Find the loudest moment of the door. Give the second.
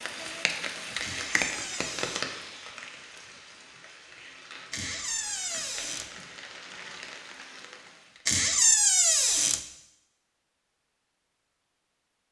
9 s.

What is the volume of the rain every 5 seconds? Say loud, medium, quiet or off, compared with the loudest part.
loud, medium, off.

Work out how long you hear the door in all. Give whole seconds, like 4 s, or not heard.
4 s.